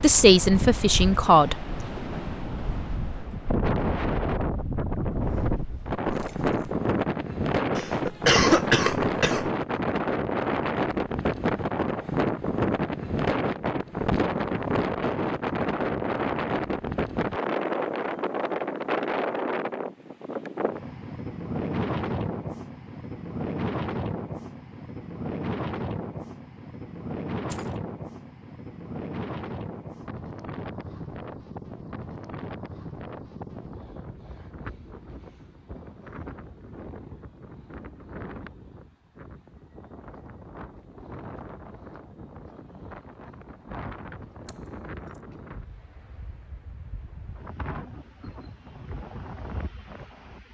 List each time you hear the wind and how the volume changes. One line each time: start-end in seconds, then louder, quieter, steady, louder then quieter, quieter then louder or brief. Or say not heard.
0.0-50.4 quieter.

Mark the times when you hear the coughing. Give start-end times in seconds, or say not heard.
7.8-9.5.